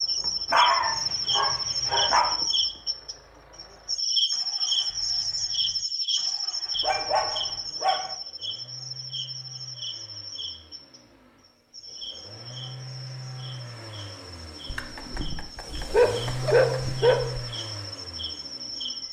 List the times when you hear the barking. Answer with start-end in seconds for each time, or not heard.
0.5-2.4, 6.8-8.2, 14.7-17.4.